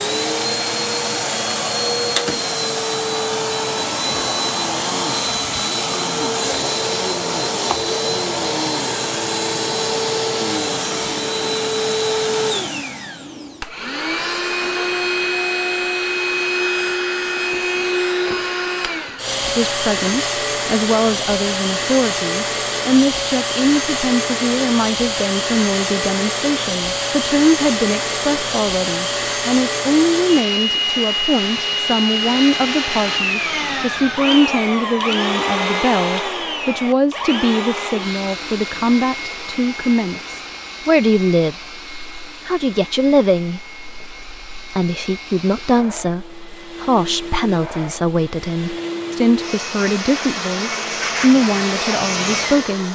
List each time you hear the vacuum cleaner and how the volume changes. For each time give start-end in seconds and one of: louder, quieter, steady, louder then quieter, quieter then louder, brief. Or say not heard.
0.0-52.8 quieter.